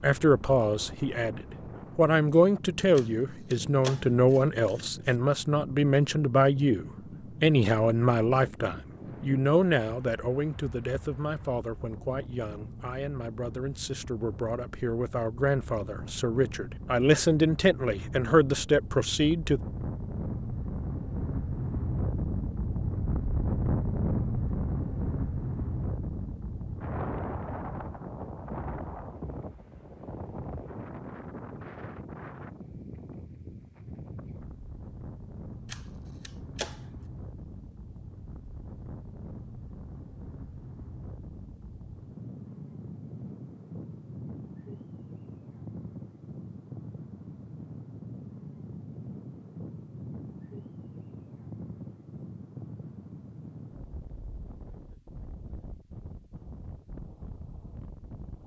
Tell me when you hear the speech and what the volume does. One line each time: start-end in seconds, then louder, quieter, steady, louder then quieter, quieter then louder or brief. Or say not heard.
0.0-19.6 quieter then louder.